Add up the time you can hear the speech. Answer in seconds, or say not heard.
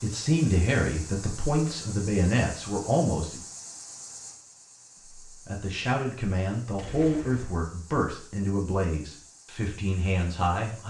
9 s.